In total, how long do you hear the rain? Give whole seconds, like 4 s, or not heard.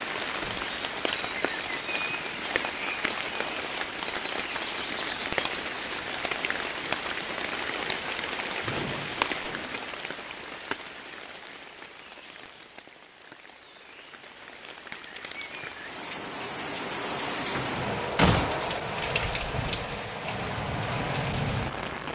22 s.